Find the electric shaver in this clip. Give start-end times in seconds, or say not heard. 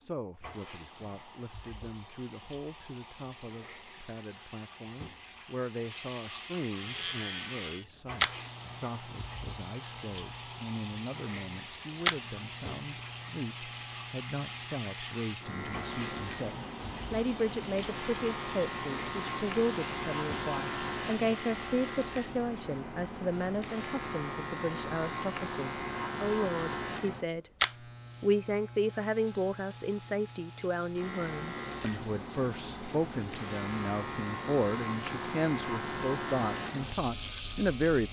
6.8-38.0.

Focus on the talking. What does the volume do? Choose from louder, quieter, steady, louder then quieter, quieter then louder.
louder.